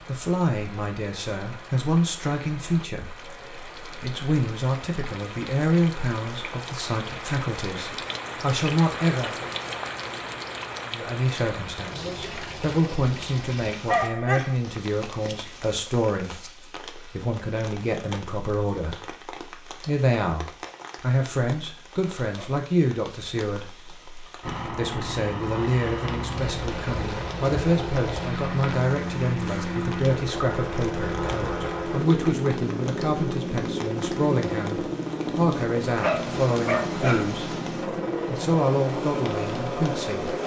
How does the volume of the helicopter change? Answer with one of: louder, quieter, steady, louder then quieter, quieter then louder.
steady.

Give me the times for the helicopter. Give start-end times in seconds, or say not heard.
24.4-40.4.